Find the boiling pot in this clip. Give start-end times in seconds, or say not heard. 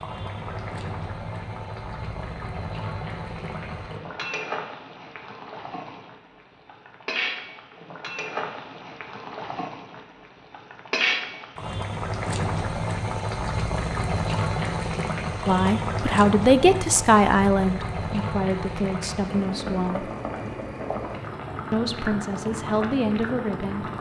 0.0-23.9.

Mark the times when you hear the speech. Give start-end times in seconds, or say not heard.
15.4-20.1, 21.7-23.9.